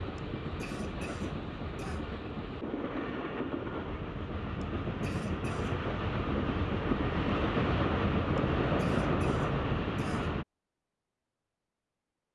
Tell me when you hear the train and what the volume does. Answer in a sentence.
You can hear the train from 0.0 to 10.4 s, getting louder.